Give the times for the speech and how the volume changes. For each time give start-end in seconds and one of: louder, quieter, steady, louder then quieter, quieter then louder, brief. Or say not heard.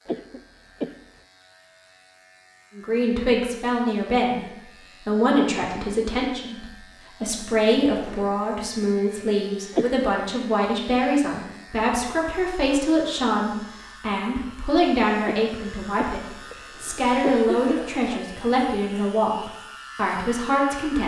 2.8-21.0 steady.